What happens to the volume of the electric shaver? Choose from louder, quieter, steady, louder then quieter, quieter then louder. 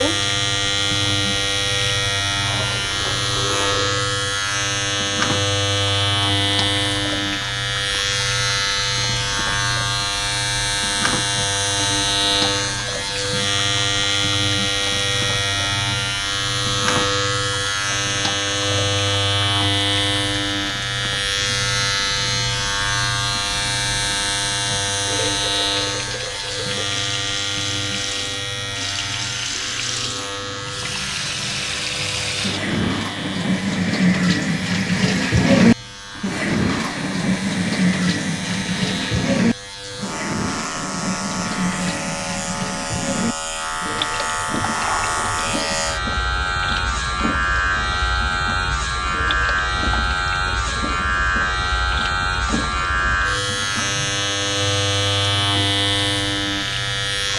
quieter then louder.